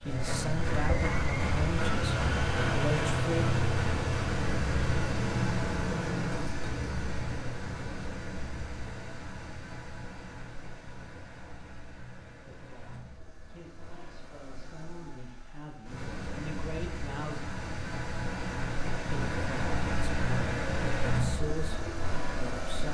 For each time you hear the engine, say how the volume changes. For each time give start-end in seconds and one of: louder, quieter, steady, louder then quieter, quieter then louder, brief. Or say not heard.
0.0-22.8 quieter then louder.